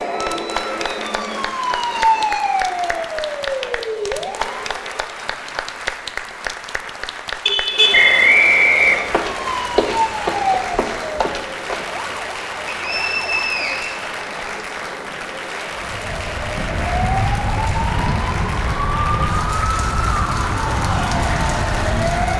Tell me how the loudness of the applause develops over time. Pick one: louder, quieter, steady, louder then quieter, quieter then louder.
steady.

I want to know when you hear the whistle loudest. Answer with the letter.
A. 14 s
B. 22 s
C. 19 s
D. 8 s
D.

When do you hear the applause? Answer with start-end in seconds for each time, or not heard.
0.0-22.3.